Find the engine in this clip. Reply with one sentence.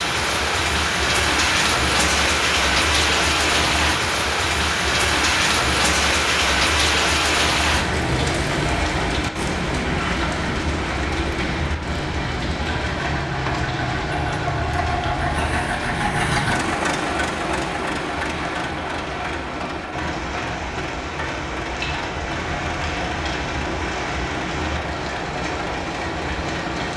You can hear the engine from 9.8 to 26.9 s.